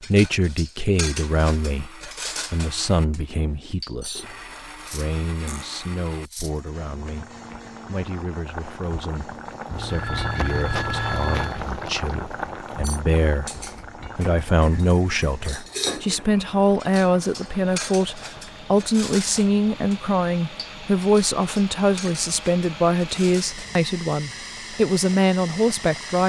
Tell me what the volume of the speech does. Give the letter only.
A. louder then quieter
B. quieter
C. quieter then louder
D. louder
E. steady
C.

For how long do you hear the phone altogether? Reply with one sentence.
The phone can be heard for 2 seconds in total.